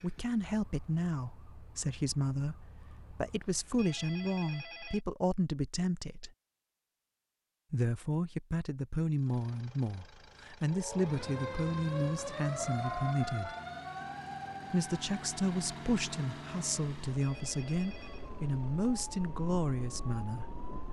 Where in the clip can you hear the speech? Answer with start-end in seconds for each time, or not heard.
0.0-6.3, 7.7-13.5, 14.7-20.6.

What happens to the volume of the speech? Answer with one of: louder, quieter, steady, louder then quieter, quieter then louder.
steady.